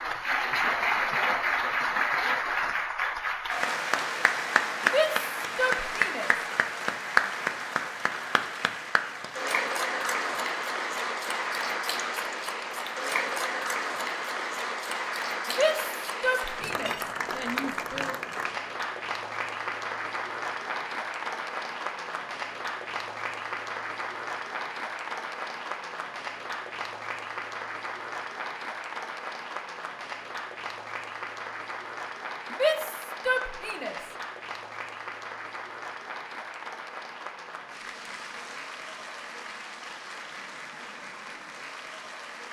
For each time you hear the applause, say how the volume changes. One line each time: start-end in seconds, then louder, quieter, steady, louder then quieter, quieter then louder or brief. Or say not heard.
0.0-42.4 quieter.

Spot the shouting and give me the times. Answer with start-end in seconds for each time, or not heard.
4.8-6.3, 15.5-18.1, 32.5-34.0.